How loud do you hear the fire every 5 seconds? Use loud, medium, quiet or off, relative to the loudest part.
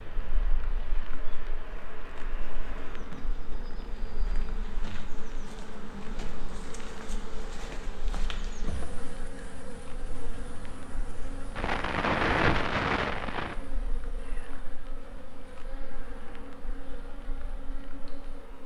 quiet, quiet, loud, quiet.